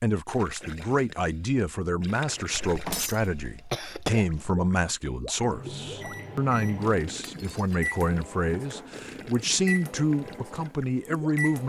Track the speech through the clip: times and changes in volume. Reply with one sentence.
The speech can be heard from 0.0 to 11.6 s, at a steady volume.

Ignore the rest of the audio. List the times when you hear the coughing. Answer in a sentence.
You can hear the coughing from 2.6 to 4.5 s.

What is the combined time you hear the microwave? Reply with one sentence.
The microwave can be heard for 6 seconds in total.